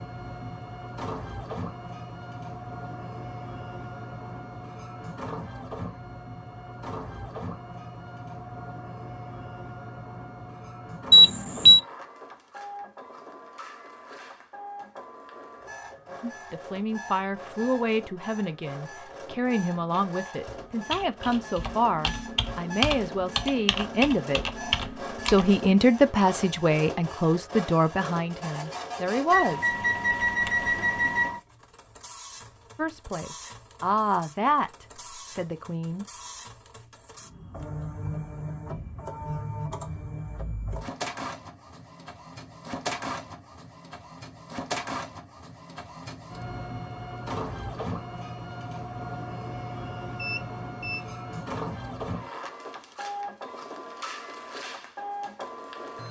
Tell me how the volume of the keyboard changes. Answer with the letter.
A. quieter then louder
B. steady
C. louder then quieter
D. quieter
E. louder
E.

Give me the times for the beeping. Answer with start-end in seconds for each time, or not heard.
11.1-11.8, 29.3-31.4, 50.1-51.0.